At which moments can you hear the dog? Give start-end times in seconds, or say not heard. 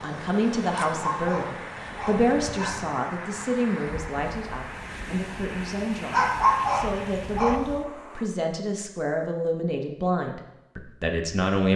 0.7-2.9, 6.1-7.7.